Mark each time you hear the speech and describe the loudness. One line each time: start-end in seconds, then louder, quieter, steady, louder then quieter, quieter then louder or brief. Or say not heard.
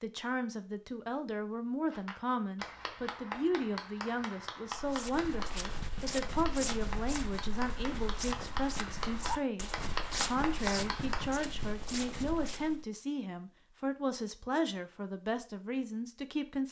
0.0-16.6 steady.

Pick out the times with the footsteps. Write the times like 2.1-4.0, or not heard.
4.8-12.8.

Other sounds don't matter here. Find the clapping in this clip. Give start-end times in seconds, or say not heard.
1.9-11.4.